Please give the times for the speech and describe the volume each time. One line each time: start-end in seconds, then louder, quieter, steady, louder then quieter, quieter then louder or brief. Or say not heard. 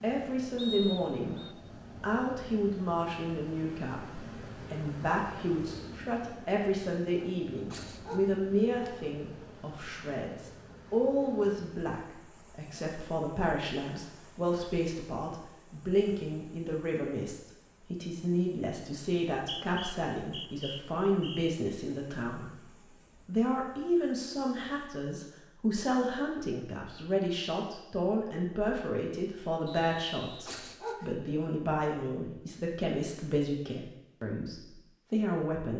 0.0-1.4 brief
2.0-22.6 steady
23.2-35.7 steady.